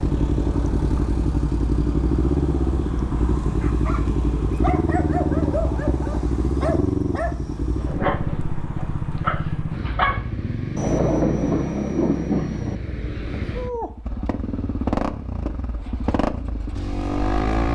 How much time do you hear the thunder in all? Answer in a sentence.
The thunder can be heard for 2 seconds in total.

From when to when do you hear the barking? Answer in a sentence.
The barking can be heard from 3.6 to 10.2 s.